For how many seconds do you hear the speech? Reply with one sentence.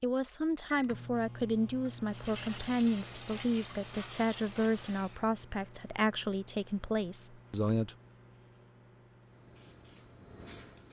You can hear the speech for 8 seconds altogether.